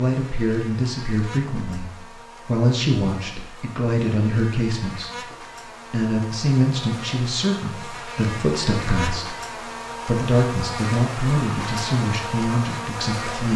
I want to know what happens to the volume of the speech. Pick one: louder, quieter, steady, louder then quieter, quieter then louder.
steady.